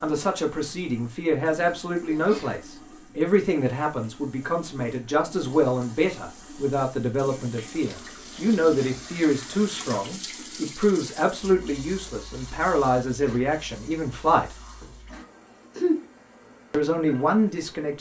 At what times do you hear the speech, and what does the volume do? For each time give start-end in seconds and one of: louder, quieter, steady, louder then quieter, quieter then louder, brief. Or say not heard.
0.0-14.6 steady
16.7-17.9 brief.